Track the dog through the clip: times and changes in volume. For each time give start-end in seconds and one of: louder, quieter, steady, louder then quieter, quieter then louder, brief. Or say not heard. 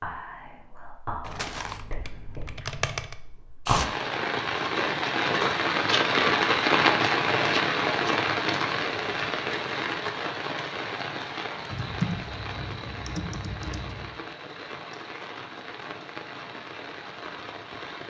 not heard.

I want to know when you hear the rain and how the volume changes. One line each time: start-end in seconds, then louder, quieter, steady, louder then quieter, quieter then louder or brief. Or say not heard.
3.6-18.0 quieter.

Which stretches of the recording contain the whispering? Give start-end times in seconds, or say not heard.
0.0-3.8.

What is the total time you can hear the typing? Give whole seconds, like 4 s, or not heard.
4 s.